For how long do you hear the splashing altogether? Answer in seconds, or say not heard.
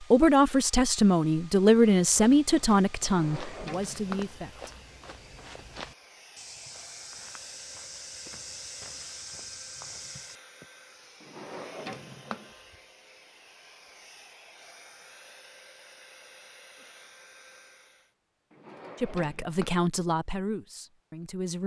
not heard.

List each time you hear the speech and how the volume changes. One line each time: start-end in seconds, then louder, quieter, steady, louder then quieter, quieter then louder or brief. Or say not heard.
0.0-4.7 quieter
19.0-21.6 brief.